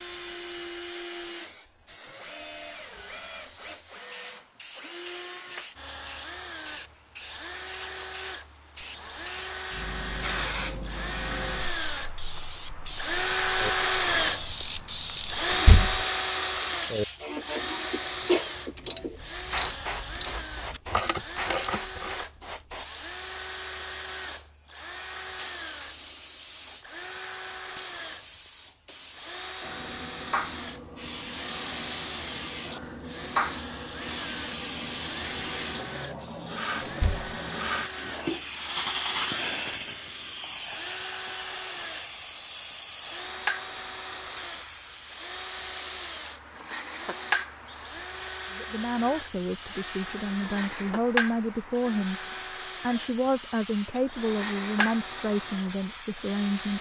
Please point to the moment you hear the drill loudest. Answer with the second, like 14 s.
14 s.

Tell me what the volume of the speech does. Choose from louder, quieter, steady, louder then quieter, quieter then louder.
steady.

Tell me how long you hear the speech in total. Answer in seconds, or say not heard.
8 s.